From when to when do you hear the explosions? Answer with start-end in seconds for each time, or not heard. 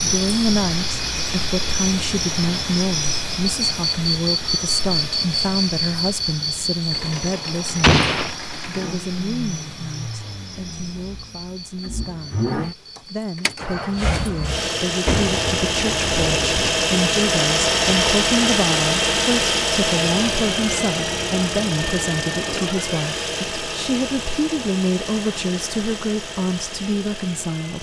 7.8-8.3, 15.1-16.8.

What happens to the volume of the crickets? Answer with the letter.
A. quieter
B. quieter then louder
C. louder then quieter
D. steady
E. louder
A.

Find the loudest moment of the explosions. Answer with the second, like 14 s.
8 s.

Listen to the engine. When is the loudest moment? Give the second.
18 s.